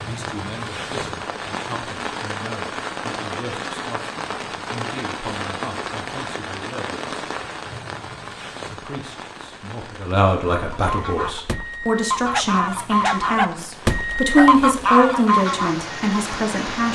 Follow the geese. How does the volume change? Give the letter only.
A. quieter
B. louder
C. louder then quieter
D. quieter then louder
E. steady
B.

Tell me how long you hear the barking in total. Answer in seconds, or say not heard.
2 s.